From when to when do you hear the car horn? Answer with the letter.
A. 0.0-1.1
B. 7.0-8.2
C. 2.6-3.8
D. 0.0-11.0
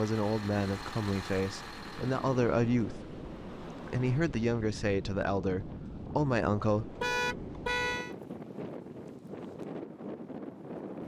B.